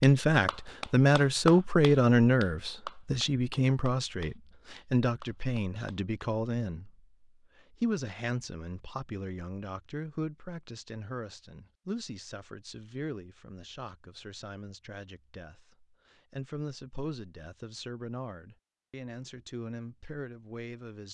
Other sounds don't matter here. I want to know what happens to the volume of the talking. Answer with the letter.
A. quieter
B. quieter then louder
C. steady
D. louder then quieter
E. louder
A.